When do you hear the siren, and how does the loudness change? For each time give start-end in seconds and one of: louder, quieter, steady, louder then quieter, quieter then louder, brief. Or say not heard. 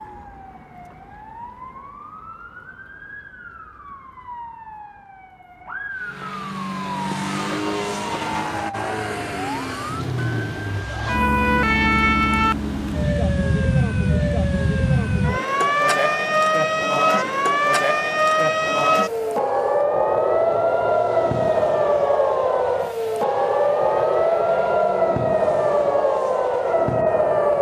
0.0-27.5 louder.